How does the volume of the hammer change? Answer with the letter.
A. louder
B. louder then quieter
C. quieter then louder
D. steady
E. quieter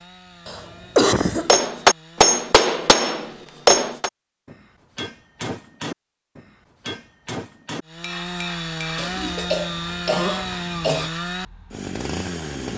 E.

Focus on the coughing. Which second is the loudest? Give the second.
1 s.